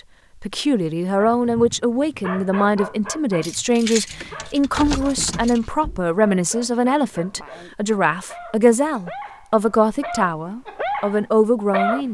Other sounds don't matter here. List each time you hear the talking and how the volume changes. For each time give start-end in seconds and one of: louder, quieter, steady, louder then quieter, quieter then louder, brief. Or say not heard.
0.4-12.0 steady.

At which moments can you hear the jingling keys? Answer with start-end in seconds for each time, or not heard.
3.4-6.0.